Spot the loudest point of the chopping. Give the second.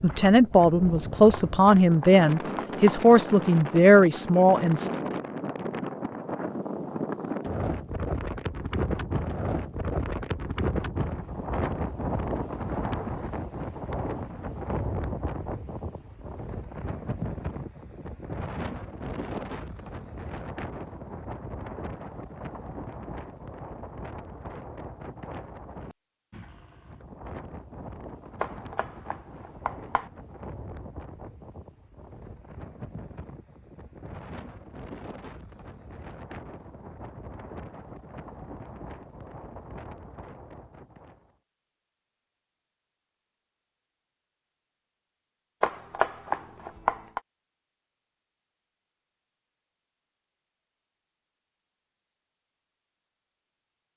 46 s.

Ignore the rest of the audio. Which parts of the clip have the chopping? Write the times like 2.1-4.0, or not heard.
1.3-3.0, 28.4-30.1, 45.6-47.2.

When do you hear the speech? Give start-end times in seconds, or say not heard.
0.0-4.9.